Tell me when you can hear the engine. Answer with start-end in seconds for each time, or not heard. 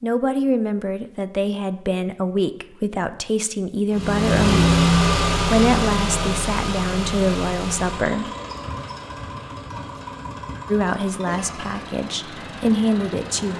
3.9-13.5.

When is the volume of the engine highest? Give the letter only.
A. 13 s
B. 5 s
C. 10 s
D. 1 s
B.